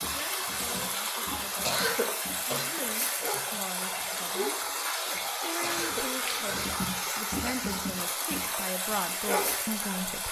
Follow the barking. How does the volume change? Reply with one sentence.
The loudness of the barking goes up.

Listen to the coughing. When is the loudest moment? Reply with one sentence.
The volume of the coughing peaks at 2 seconds.